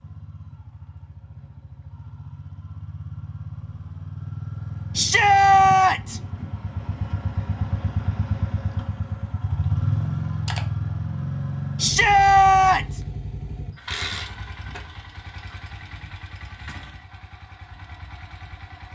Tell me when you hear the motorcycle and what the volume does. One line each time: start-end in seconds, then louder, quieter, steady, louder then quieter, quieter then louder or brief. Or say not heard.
0.0-18.9 louder then quieter.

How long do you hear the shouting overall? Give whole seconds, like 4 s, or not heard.
2 s.